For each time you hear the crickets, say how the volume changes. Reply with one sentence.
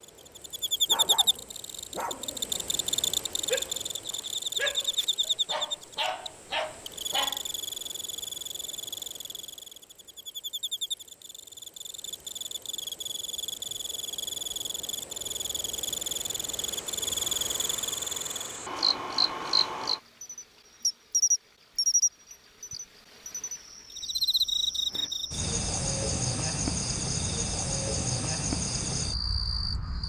You can hear the crickets from 0.0 to 30.0 s, getting quieter then louder.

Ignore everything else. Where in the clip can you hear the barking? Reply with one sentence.
The barking can be heard from 0.8 to 7.4 s.